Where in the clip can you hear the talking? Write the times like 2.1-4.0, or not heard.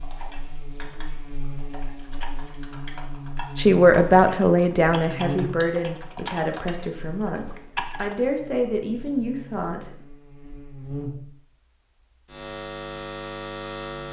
3.5-9.9.